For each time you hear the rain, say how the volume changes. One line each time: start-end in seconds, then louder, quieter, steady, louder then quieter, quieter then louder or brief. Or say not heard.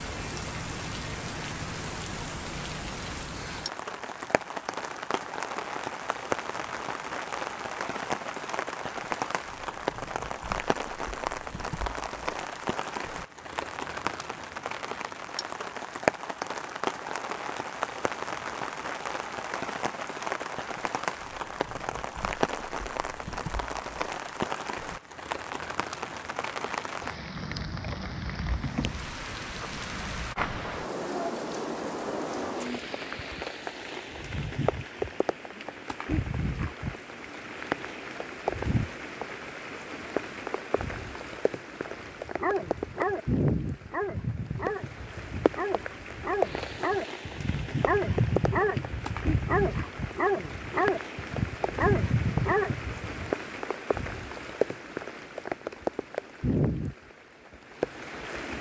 0.0-58.5 steady.